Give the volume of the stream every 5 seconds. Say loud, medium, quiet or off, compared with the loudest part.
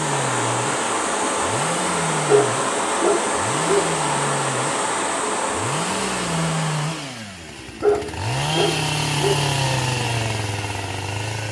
loud, loud, off.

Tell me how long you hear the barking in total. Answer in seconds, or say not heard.
3 s.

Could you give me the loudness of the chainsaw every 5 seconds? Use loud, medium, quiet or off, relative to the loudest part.
medium, loud, loud.